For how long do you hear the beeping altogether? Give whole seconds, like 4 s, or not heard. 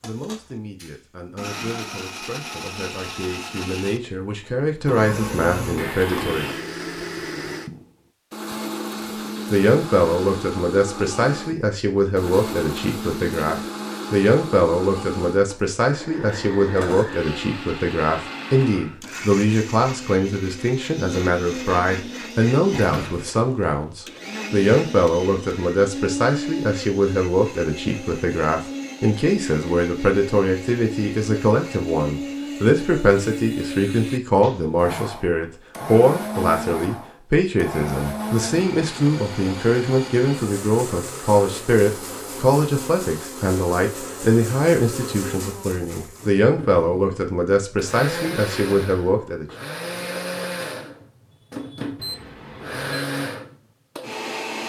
2 s.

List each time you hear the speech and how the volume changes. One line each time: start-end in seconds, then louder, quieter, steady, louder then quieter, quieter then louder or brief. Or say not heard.
0.0-6.5 louder
9.5-49.5 steady.